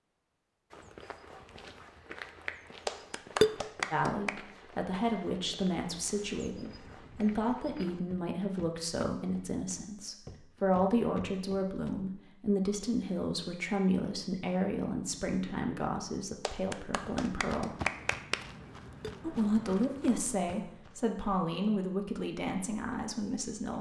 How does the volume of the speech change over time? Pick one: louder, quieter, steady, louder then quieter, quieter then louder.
steady.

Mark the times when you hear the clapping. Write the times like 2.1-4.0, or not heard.
2.9-4.3, 16.4-18.4.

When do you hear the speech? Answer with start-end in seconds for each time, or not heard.
3.9-17.7, 19.2-23.7.